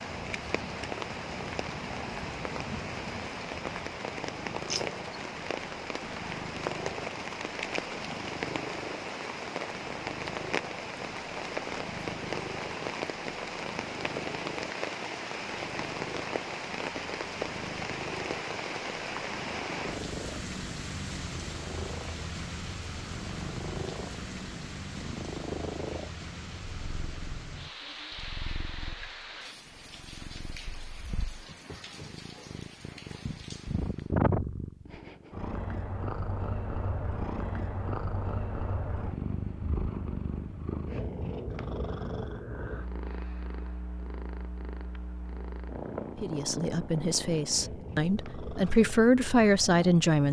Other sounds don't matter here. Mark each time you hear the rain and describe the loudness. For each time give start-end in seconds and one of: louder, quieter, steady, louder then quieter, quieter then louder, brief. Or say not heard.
0.0-34.1 quieter.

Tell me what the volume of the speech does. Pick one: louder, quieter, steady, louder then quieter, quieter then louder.
louder.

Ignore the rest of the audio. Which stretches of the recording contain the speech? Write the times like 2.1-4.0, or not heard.
46.2-50.2.